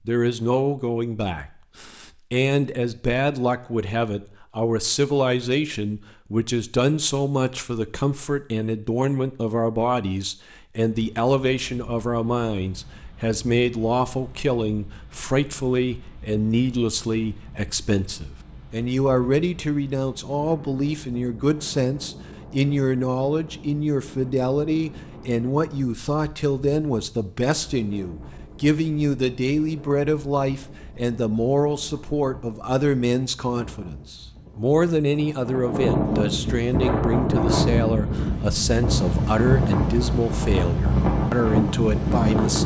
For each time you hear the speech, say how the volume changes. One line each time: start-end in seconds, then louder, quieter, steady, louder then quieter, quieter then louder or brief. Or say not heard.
0.1-42.6 steady.